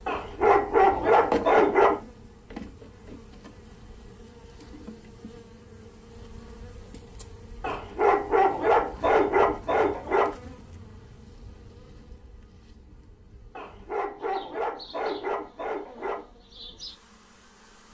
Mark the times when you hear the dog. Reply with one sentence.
The dog can be heard from 0.1 to 2.0 s, from 7.6 to 10.3 s and from 13.6 to 16.2 s.